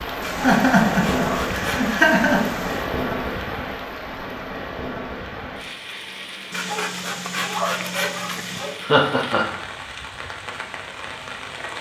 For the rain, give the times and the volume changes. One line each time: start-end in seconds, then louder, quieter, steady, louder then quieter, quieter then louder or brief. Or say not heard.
0.0-11.7 quieter.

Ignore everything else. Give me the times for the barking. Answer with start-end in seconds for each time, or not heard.
0.2-2.9, 6.5-8.8.